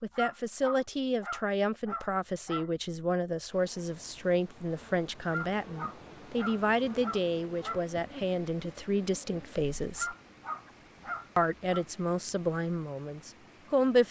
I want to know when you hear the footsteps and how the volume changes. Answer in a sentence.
The footsteps can't be heard in this clip.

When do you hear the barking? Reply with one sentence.
The barking can be heard from 0.1 to 2.7 s, from 5.2 to 7.8 s and from 9.9 to 11.8 s.